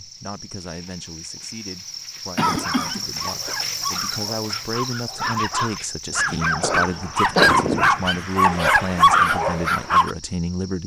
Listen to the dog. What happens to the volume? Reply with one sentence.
The volume of the dog goes up.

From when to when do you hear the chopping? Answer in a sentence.
The chopping can't be heard in this clip.